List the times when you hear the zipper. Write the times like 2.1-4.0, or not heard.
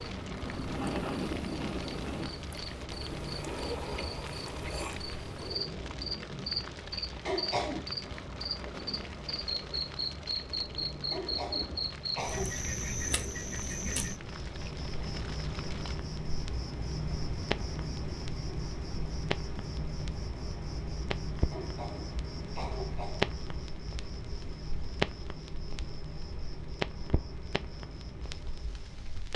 not heard.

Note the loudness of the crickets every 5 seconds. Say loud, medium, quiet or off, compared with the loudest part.
loud, loud, loud, loud, medium, medium.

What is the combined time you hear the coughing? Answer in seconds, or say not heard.
4 s.